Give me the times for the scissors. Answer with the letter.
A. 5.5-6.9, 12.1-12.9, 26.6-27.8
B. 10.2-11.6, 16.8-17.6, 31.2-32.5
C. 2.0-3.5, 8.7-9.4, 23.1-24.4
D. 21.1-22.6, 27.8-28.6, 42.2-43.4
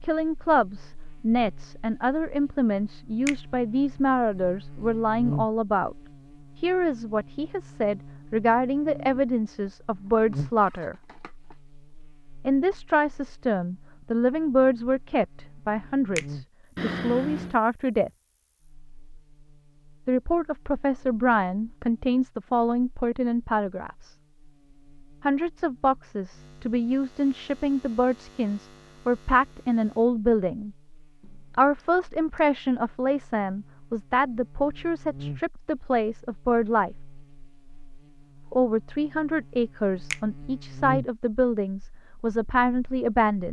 B.